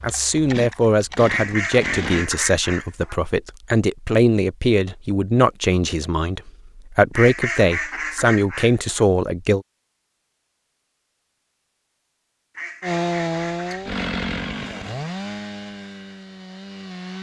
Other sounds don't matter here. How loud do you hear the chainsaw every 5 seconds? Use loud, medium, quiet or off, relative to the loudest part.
medium, off, loud, medium.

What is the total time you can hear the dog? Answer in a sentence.
You can't hear the dog here.